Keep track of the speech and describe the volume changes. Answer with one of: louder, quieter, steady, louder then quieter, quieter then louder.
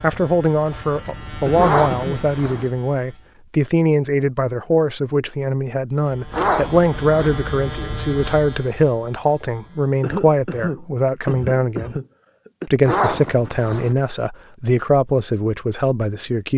steady.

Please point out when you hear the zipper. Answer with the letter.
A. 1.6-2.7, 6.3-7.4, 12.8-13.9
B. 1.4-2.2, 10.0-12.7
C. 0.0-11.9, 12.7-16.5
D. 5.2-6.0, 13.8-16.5
A.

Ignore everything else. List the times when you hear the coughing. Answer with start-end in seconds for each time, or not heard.
1.4-2.2, 10.0-12.7.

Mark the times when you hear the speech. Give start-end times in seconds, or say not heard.
0.0-11.9, 12.7-16.5.